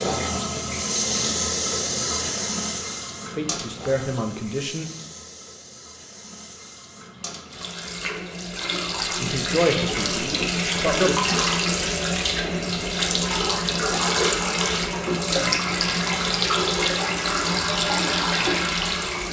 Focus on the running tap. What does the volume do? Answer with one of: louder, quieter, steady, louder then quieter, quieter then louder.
quieter then louder.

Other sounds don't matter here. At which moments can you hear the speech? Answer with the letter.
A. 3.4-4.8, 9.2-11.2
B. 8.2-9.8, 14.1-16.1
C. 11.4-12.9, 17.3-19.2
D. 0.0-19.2
A.